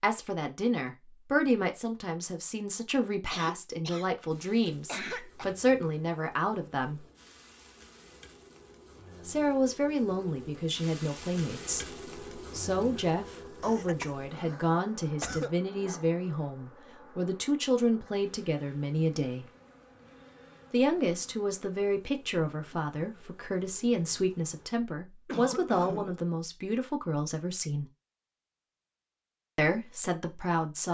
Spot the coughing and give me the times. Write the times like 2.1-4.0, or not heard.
3.2-4.1, 4.8-5.5, 13.6-15.5, 25.2-26.2.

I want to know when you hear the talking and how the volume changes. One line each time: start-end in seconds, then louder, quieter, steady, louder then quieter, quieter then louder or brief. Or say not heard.
0.0-7.0 quieter then louder
9.2-19.4 steady
20.7-27.9 steady
29.6-30.8 brief.